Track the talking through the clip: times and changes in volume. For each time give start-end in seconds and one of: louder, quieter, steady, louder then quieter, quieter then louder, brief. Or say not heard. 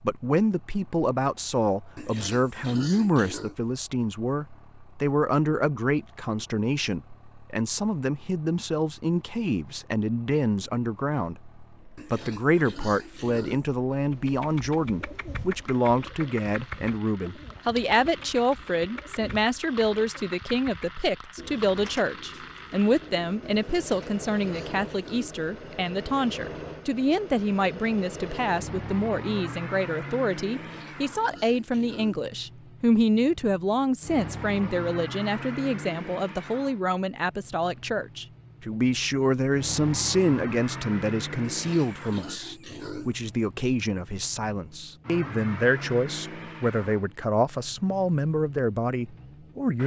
0.0-49.8 steady.